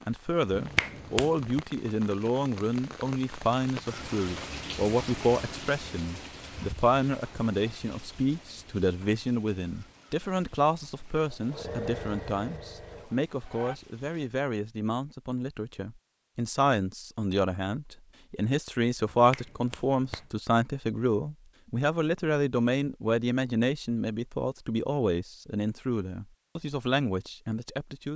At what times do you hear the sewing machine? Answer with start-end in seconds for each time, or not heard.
11.3-13.8.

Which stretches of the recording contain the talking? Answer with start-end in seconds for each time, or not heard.
0.1-28.1.